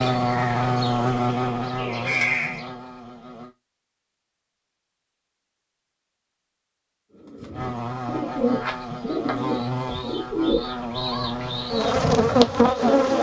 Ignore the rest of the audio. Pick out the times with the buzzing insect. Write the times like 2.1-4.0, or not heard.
0.0-3.5, 7.5-13.1.